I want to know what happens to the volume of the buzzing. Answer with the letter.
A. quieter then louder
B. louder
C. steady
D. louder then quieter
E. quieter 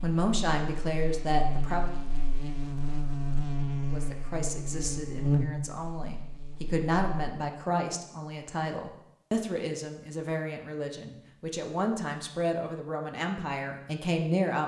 D.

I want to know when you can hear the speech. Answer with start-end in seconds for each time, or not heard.
0.0-1.9, 3.9-14.6.